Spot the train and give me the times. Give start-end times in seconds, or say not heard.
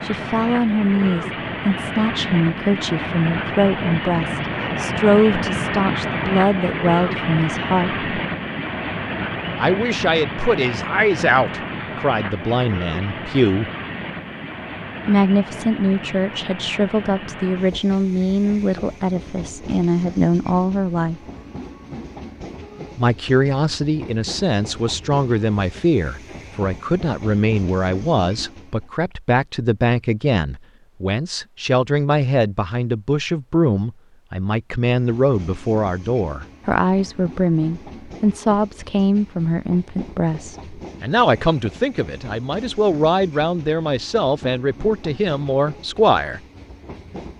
0.0-28.9, 34.9-47.3.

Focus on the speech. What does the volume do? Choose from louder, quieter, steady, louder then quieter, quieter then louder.
steady.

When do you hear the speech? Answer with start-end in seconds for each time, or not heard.
0.0-8.1, 9.6-13.7, 15.1-21.2, 22.9-46.4.